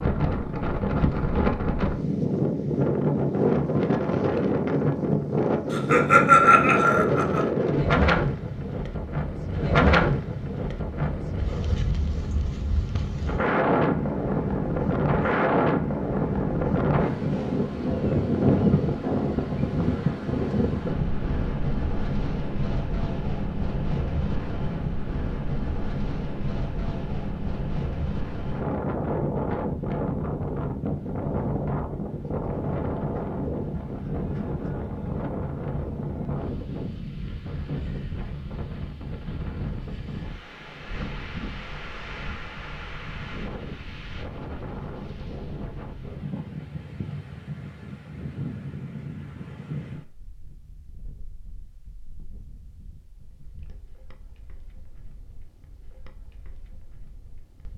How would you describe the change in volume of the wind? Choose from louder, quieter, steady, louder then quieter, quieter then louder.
quieter.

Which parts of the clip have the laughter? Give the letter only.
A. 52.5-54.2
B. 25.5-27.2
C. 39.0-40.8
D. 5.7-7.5
D.